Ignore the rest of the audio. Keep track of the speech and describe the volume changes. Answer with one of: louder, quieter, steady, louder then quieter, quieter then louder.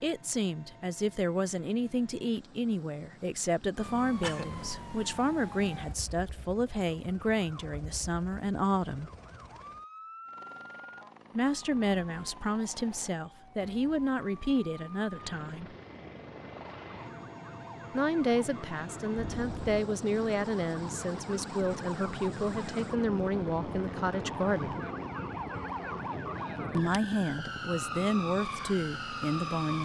steady.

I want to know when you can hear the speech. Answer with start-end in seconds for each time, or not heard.
0.0-9.1, 11.3-15.8, 17.9-24.8, 26.7-29.8.